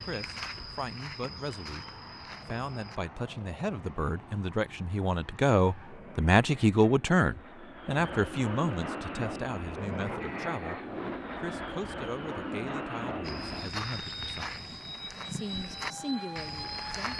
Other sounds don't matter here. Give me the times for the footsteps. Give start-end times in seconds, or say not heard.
0.0-3.0, 13.2-17.1.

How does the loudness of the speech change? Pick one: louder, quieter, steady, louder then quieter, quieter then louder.
louder then quieter.